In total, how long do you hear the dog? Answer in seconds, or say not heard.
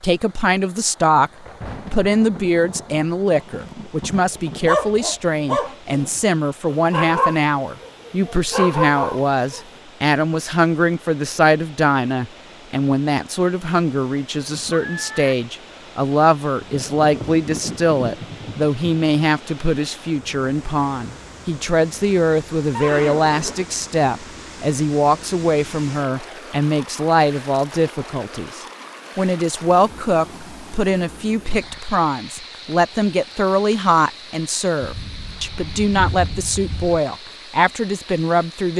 6 s.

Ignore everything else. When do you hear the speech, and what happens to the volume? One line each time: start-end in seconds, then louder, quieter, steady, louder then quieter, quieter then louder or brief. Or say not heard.
0.0-1.3 brief
1.9-38.7 steady.